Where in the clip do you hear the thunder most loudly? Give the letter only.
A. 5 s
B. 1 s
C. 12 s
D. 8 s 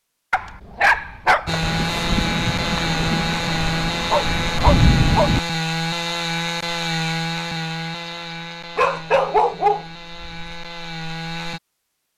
A.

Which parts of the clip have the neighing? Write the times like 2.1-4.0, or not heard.
not heard.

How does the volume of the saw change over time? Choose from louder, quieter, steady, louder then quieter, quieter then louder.
quieter.